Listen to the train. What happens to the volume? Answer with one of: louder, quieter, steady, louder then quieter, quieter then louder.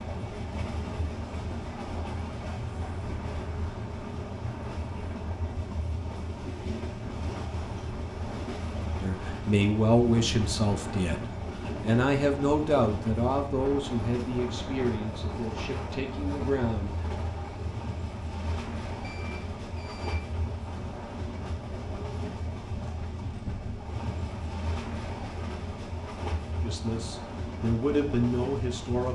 steady.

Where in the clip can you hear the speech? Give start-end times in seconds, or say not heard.
8.9-17.1, 26.6-29.0.